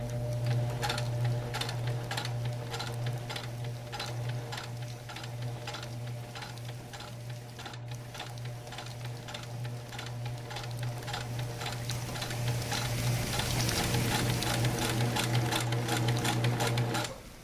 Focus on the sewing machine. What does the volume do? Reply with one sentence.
The volume of the sewing machine goes down, then up.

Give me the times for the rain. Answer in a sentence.
The rain can be heard from 0.0 to 17.3 s.